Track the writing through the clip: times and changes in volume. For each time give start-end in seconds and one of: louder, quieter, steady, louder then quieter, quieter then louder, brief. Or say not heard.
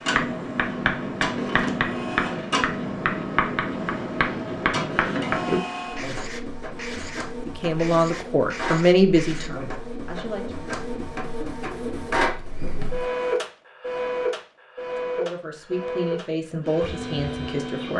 0.1-9.5 quieter.